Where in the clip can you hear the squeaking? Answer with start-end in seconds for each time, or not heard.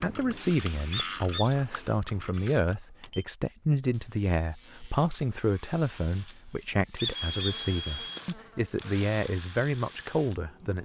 0.9-1.6, 7.0-7.7.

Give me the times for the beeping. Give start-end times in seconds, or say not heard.
2.6-3.2, 7.2-8.2.